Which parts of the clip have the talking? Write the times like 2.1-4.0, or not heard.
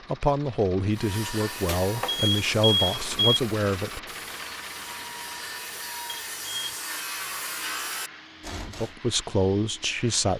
0.1-4.0, 8.7-10.3.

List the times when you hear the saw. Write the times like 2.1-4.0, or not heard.
0.9-8.9.